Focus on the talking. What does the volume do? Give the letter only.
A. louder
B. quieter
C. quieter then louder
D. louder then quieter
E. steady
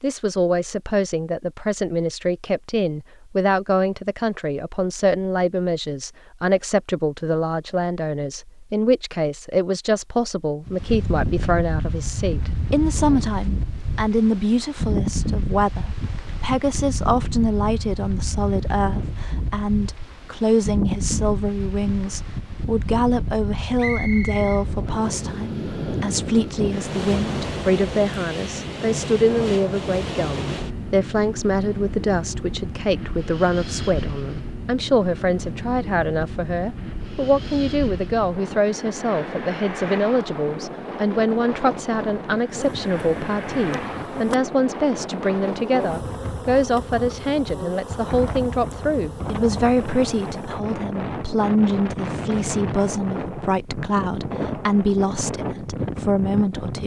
E.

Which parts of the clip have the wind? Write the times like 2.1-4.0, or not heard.
10.7-56.8.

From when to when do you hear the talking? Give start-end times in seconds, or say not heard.
0.0-56.8.